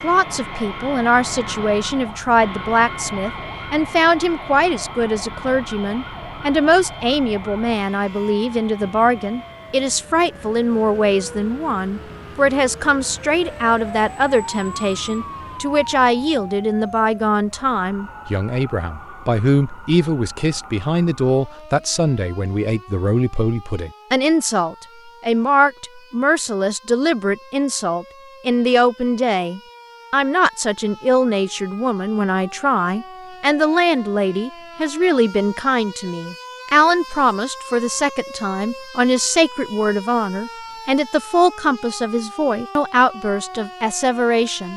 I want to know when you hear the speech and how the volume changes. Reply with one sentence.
You can hear the speech from 0.0 to 44.7 s, at a steady volume.